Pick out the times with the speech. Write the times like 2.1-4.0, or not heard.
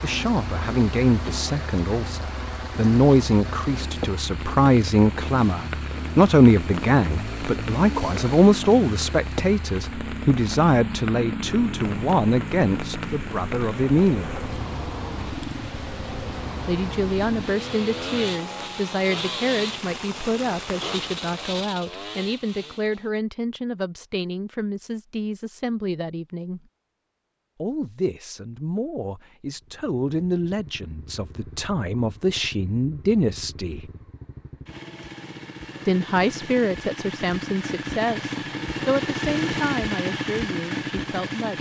0.0-14.4, 16.6-26.6, 27.6-33.9, 35.9-41.5.